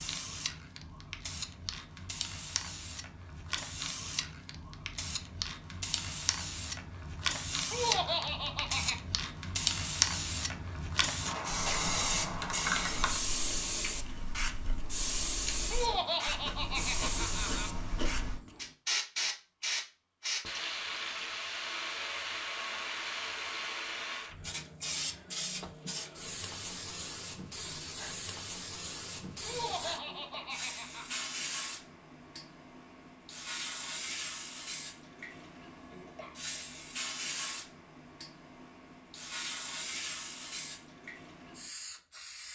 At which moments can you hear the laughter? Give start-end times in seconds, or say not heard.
7.7-9.0, 15.7-17.7, 29.4-31.2.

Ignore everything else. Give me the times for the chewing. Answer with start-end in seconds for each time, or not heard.
11.5-18.4.